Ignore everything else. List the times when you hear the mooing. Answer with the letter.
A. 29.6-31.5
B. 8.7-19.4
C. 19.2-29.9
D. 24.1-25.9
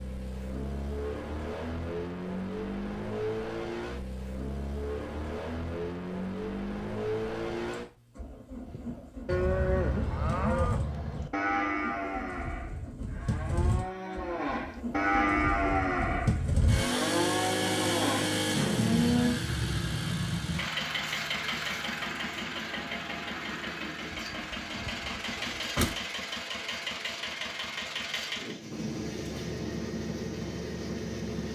B.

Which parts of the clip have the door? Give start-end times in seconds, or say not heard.
24.1-25.9.